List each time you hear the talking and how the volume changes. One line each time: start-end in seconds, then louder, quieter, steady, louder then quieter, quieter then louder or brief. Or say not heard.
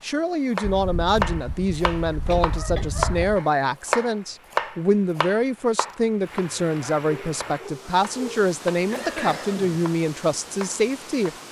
0.0-11.3 steady.